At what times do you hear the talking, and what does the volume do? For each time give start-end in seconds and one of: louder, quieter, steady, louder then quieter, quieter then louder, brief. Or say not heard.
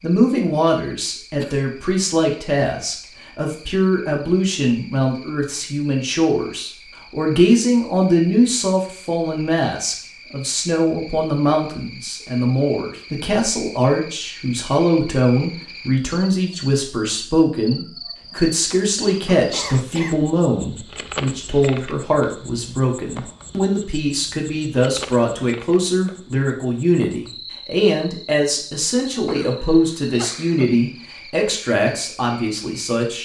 0.0-33.2 steady.